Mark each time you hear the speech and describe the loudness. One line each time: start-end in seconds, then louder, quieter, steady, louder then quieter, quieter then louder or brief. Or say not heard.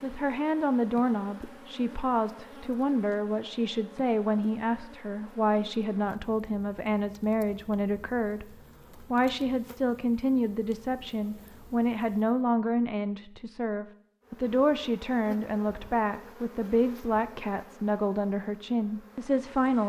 0.0-19.8 steady.